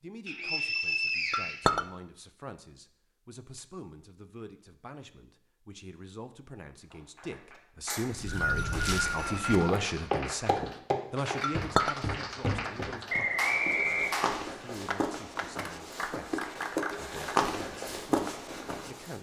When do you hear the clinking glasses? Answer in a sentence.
The clinking glasses can be heard from 1.3 to 1.9 s and from 11.4 to 12.0 s.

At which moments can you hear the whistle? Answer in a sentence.
You can hear the whistle from 0.2 to 1.8 s, from 7.8 to 9.6 s and from 13.1 to 14.2 s.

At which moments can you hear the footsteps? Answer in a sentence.
The footsteps can be heard from 8.2 to 19.1 s.